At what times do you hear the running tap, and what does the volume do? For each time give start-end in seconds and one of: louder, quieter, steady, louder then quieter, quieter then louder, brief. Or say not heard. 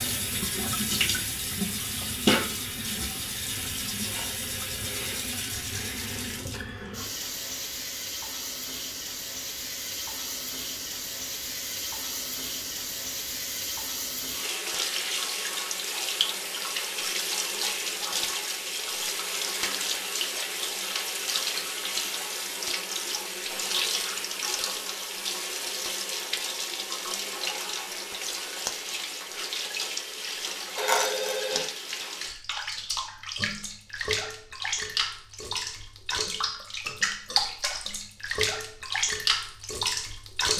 0.0-40.5 steady.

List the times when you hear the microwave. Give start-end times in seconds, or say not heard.
not heard.